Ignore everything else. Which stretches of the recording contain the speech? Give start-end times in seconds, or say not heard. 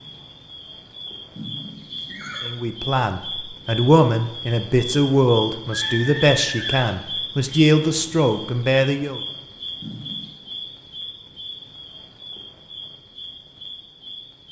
2.4-9.2.